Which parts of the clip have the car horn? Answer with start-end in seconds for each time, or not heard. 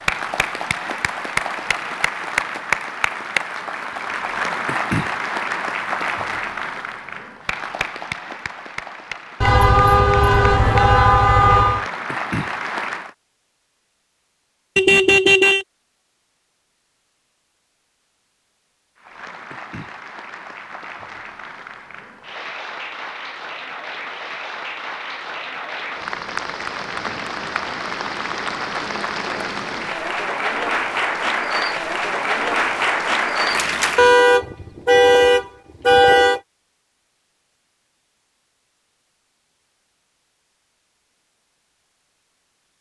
9.4-11.8, 14.8-15.7, 34.0-36.4.